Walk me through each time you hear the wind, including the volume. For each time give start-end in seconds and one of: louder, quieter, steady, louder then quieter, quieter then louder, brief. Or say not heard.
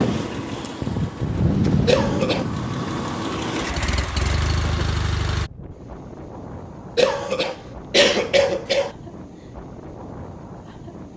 0.0-11.1 quieter.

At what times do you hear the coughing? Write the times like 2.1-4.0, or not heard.
1.9-2.5, 7.0-8.9.